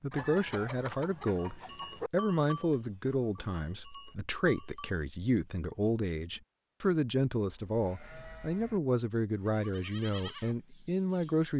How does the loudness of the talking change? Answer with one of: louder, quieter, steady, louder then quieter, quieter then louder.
steady.